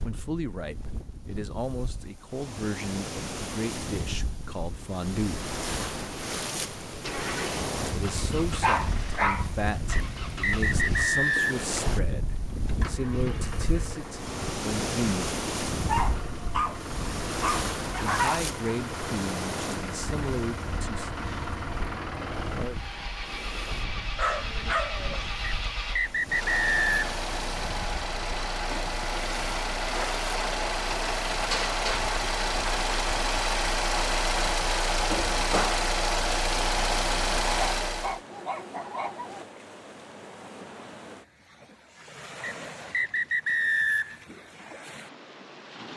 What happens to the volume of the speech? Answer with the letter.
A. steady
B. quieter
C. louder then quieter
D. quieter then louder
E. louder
A.